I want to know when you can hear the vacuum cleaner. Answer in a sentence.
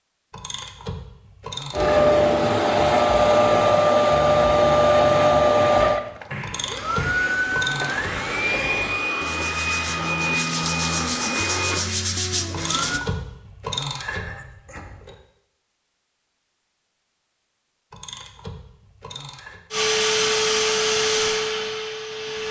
The vacuum cleaner can be heard from 1.7 to 13.1 s and from 19.7 to 22.4 s.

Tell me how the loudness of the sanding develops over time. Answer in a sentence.
The volume of the sanding goes up.